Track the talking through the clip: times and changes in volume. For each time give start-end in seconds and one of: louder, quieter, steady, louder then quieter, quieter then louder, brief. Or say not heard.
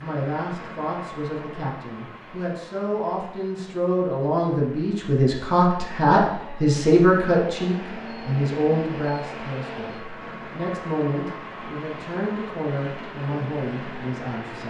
0.0-14.6 louder then quieter.